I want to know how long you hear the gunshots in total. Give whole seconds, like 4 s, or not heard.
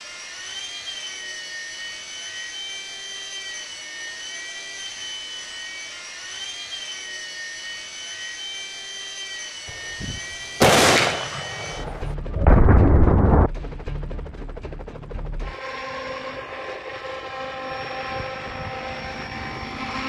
4 s.